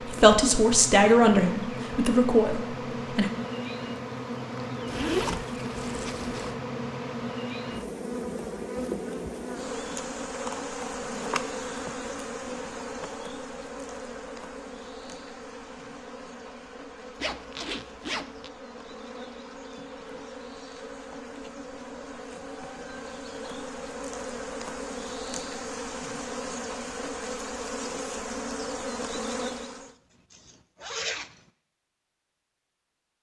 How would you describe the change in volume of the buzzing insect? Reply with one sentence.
The loudness of the buzzing insect goes down, then up.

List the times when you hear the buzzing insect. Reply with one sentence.
You can hear the buzzing insect from 0.0 to 29.9 s.